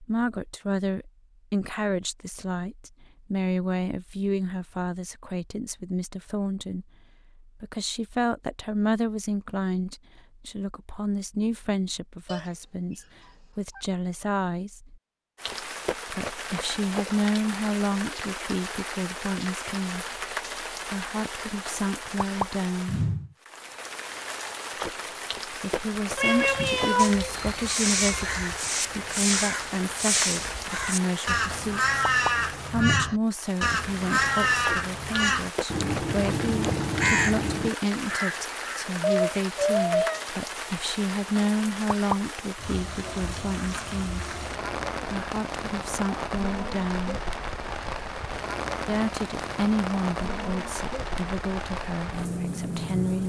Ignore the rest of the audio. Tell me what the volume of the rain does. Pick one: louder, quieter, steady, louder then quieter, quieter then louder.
steady.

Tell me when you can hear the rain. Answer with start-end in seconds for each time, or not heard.
15.3-53.2.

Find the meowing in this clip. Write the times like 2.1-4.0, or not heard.
12.2-13.8, 26.1-28.2, 39.0-40.2.